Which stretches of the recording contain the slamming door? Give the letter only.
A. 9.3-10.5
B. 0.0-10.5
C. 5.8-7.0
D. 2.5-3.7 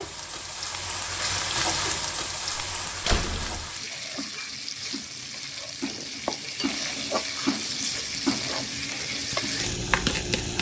D.